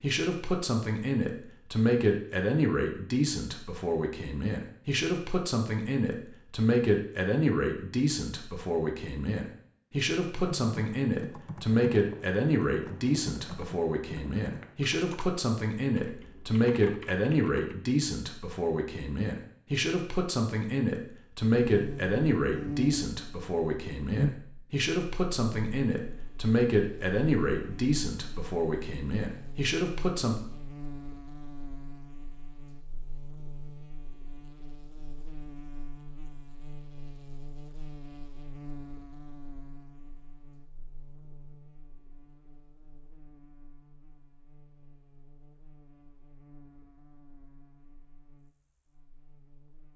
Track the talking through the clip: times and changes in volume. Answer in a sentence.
You can hear the talking from 0.0 to 30.4 s, at a steady volume.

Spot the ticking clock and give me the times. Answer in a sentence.
The ticking clock can't be heard in this clip.